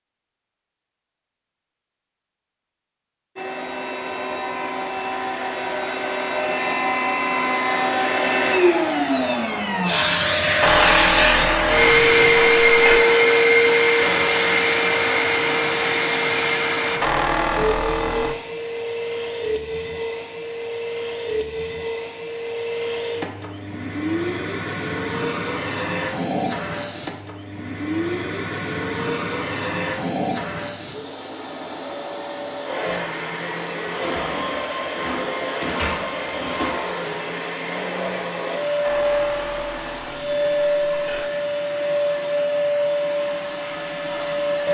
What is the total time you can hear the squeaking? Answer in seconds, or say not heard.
6 s.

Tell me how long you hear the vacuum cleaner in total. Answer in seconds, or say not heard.
41 s.